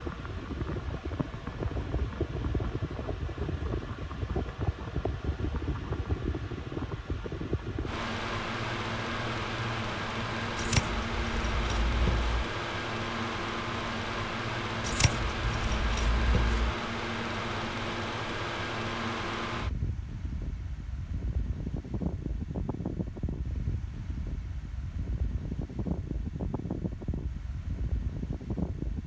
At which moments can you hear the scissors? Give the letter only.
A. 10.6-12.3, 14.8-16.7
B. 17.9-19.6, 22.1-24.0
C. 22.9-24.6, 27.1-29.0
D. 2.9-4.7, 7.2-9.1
A.